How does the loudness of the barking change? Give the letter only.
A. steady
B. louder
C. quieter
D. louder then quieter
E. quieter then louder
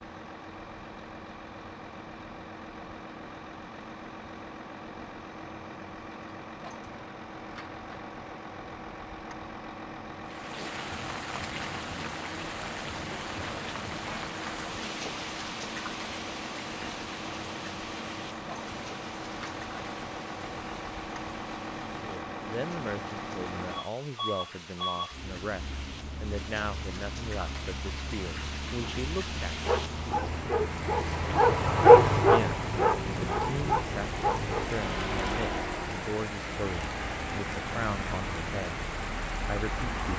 D.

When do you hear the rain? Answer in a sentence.
The rain can be heard from 10.2 to 40.1 s.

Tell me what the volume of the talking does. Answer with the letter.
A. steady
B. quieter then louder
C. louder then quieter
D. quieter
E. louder
A.